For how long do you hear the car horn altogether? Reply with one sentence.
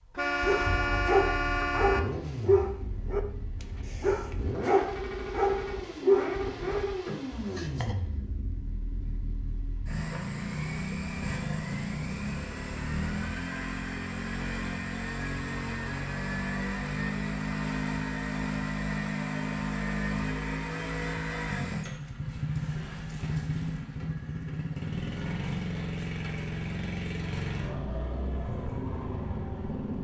You can hear the car horn for 2 seconds altogether.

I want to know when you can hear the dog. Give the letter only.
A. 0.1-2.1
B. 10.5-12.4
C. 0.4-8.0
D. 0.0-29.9
C.